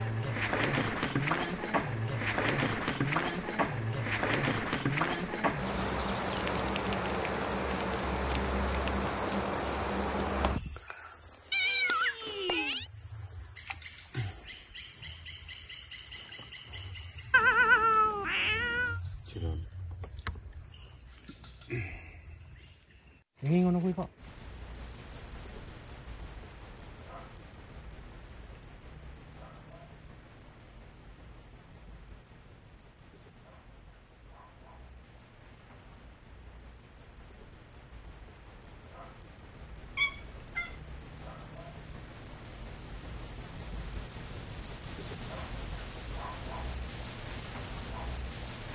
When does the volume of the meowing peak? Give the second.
18 s.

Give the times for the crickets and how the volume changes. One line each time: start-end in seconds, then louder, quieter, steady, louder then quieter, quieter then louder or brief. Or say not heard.
0.0-48.7 quieter then louder.